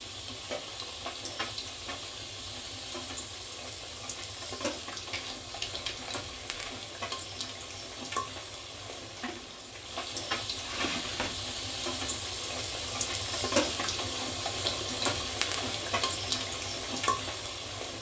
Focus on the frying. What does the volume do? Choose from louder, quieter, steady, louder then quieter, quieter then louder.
louder.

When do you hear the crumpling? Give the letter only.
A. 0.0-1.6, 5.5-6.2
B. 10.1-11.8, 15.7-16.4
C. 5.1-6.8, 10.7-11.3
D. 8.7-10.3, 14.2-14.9
C.